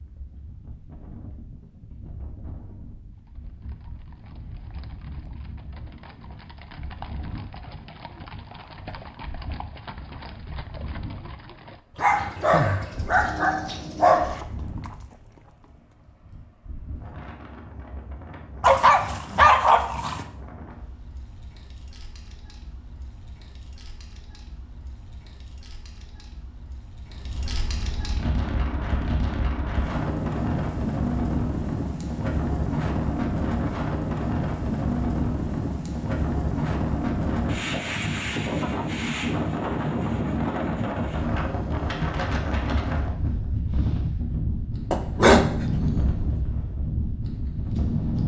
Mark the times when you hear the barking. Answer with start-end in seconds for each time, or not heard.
11.9-14.4, 18.6-20.2, 44.9-46.4.